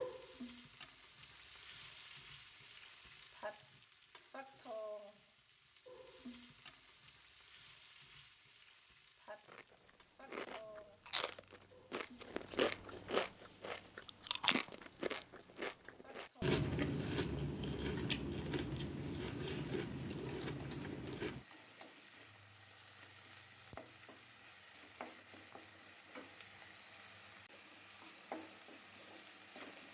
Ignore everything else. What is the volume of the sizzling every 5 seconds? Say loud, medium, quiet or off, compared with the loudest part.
loud, medium, medium, medium, medium, loud.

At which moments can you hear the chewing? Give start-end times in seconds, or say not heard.
9.4-21.4.